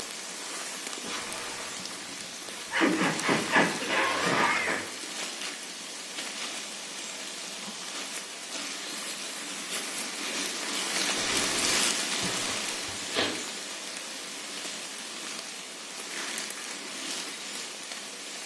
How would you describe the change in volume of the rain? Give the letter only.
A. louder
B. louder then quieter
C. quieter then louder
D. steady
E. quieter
B.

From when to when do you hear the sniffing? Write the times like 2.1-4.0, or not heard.
2.7-4.8, 12.2-13.3.